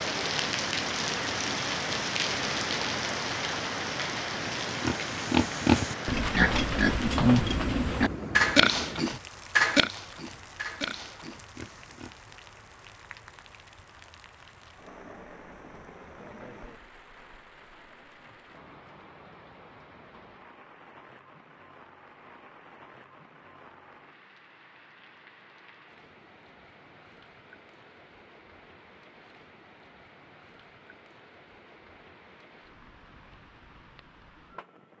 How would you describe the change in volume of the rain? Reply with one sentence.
The loudness of the rain goes down.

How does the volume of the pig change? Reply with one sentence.
The loudness of the pig goes down.